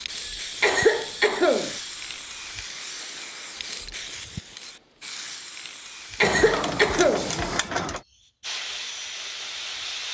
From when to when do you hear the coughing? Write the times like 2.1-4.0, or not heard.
0.6-1.8, 6.2-7.3.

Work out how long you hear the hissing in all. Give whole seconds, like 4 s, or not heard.
10 s.